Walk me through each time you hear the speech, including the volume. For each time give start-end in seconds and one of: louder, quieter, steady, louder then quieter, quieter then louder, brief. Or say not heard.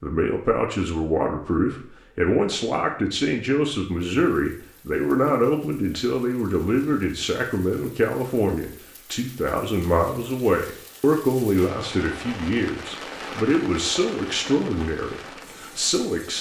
0.0-16.3 steady.